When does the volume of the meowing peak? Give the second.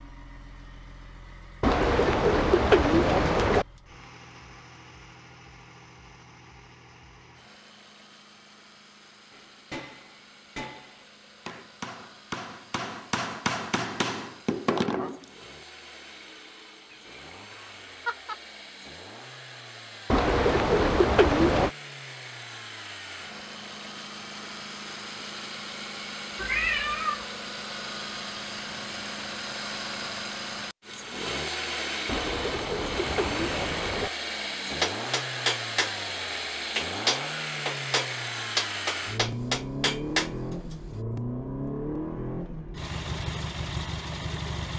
27 s.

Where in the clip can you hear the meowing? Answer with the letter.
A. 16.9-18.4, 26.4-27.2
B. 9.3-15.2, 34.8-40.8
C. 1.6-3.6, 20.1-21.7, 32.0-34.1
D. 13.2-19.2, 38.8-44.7
A.